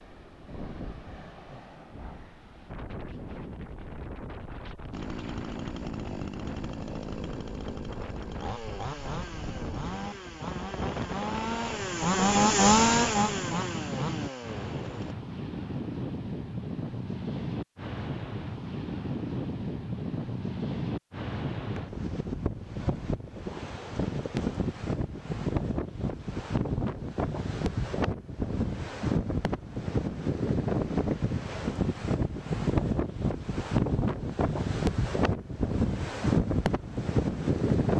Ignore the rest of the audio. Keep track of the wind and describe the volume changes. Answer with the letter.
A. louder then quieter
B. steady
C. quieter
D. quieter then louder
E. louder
E.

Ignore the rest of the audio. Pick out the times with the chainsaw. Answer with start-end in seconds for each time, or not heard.
4.9-15.2.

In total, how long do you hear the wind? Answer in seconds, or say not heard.
38 s.